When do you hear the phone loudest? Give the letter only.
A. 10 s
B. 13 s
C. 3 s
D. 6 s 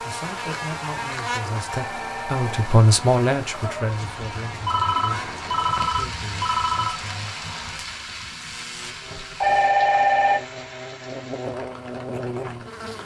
A.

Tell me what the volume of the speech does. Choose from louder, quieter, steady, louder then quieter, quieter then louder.
louder then quieter.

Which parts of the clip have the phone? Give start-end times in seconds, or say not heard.
1.6-2.8, 4.7-7.0, 9.4-10.4.